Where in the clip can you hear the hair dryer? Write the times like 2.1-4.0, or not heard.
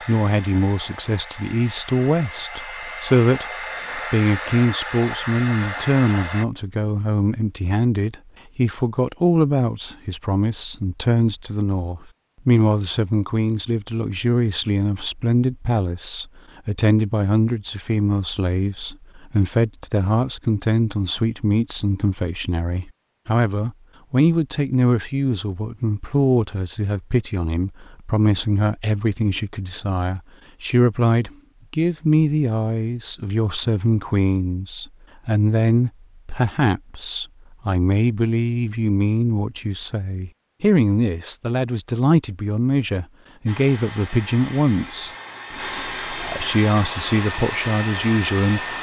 0.0-6.5, 43.5-48.7.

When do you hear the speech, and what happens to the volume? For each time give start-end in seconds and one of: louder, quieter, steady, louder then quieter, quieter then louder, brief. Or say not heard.
0.1-48.6 steady.